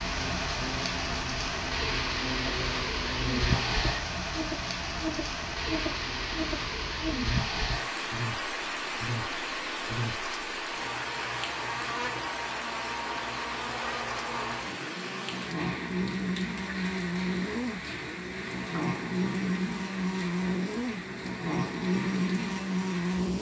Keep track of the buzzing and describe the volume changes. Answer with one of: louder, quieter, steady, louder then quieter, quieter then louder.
louder.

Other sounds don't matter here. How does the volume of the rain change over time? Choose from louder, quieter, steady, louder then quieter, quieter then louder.
quieter.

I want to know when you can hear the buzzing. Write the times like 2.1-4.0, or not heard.
0.0-23.3.